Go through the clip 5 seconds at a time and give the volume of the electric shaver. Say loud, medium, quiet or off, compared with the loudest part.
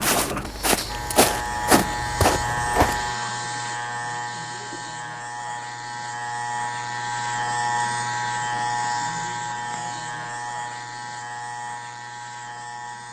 loud, loud, medium.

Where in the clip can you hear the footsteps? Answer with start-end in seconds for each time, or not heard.
0.0-3.1.